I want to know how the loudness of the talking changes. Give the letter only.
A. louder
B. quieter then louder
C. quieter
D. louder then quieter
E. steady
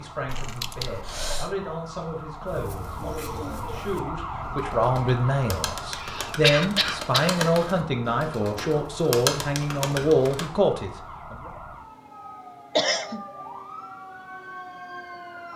A.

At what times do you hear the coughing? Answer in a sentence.
You can hear the coughing from 0.2 to 1.6 s, from 5.9 to 7.3 s and from 12.8 to 13.2 s.